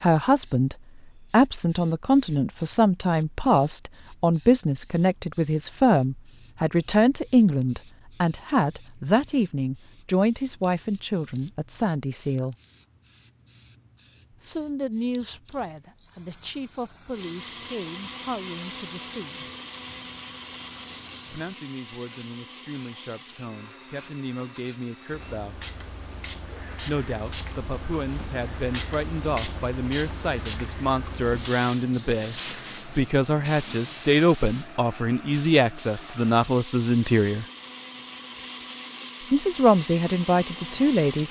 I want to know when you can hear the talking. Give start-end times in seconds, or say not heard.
0.0-12.6, 14.4-19.4, 21.3-25.6, 26.9-37.5, 39.3-41.2.